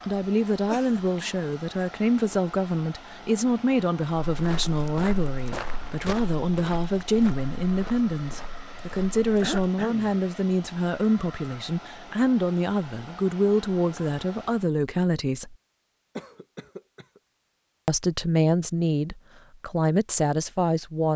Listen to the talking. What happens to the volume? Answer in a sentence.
The loudness of the talking stays about the same.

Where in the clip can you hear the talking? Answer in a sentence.
You can hear the talking from 0.1 to 15.6 s and from 17.9 to 21.1 s.